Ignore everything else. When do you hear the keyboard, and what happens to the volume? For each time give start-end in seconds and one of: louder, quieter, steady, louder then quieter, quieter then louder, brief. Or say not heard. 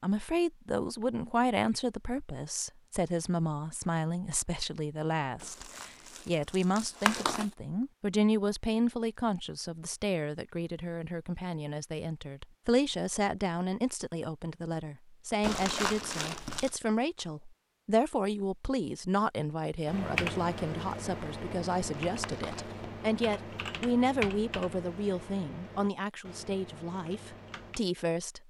19.9-27.8 quieter.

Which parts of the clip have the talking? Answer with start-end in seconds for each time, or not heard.
0.0-28.4.